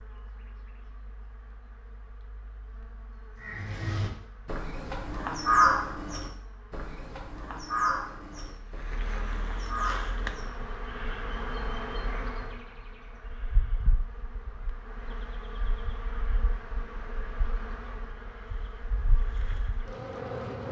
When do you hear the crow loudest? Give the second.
6 s.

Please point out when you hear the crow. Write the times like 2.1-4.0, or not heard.
3.4-10.7.